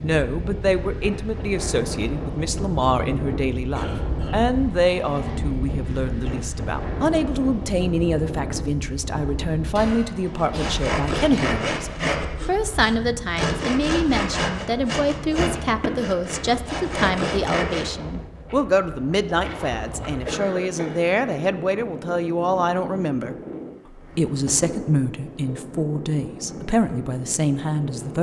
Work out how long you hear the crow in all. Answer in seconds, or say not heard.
not heard.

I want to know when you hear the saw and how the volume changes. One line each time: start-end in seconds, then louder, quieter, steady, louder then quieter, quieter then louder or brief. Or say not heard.
10.2-17.9 steady.